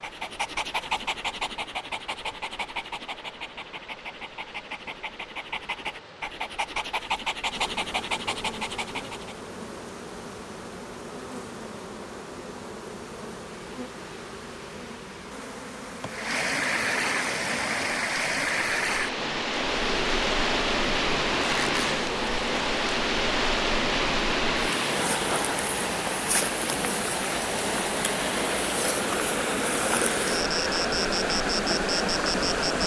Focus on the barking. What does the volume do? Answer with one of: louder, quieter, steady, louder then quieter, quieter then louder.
quieter then louder.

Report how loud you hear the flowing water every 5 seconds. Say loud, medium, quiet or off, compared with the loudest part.
quiet, quiet, quiet, loud, loud, loud, loud.